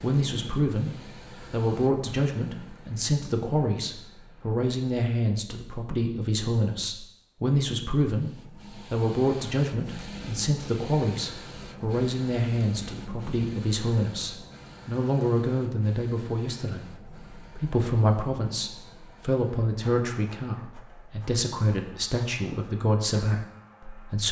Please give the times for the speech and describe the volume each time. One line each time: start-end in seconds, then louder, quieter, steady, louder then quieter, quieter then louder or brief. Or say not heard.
0.0-24.2 steady.